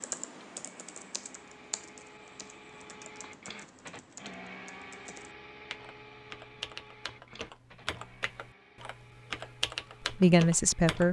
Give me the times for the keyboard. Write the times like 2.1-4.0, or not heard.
0.0-11.0.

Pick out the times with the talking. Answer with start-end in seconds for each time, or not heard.
10.1-11.0.